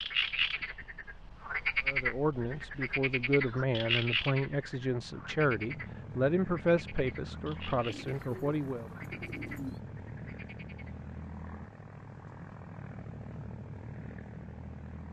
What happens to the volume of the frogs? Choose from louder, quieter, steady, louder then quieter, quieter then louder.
quieter.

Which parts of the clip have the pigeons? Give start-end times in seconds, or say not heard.
7.8-9.8.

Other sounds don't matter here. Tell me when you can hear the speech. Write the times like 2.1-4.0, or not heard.
1.9-8.8.